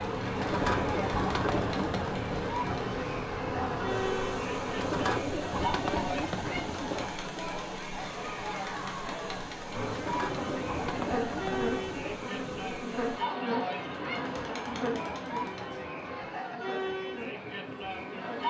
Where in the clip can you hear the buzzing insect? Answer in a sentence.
The buzzing insect can be heard from 0.0 to 5.2 s and from 9.7 to 18.4 s.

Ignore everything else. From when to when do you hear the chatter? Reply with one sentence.
The chatter can be heard from 0.0 to 18.4 s.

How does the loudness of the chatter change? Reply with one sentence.
The loudness of the chatter stays about the same.